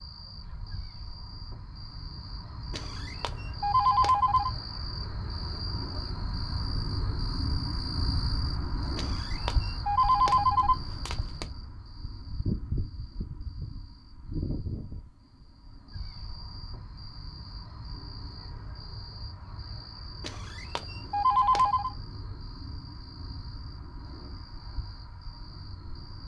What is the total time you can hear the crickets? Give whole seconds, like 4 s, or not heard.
26 s.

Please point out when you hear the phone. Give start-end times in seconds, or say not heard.
2.7-4.5, 8.9-11.4, 20.2-21.9.